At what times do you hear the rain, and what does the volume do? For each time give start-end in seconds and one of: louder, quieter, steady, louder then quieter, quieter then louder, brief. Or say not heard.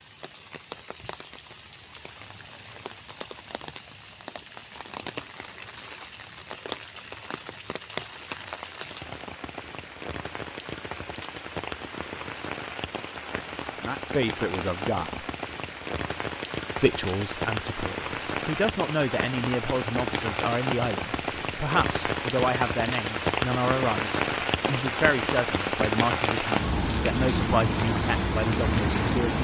0.0-29.3 louder.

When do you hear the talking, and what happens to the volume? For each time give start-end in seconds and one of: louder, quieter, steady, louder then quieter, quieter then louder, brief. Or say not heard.
13.8-15.2 brief
16.8-29.3 steady.